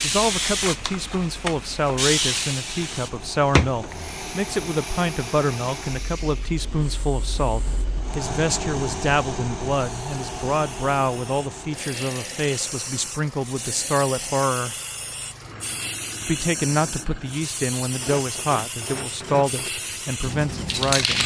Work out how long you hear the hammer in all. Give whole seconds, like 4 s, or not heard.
not heard.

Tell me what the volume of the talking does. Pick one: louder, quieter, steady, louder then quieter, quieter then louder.
steady.